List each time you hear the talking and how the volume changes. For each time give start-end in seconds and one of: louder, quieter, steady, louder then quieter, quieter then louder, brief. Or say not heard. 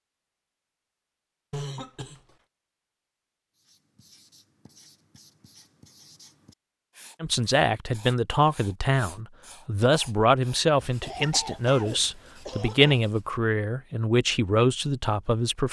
7.2-15.6 steady.